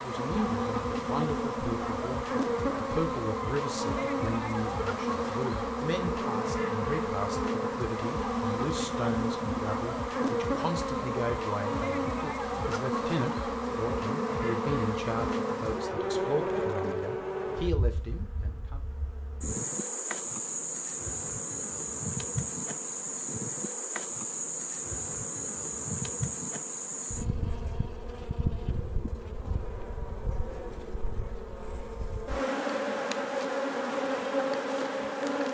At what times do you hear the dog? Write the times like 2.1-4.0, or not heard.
not heard.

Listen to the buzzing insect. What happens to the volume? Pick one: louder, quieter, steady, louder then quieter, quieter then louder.
steady.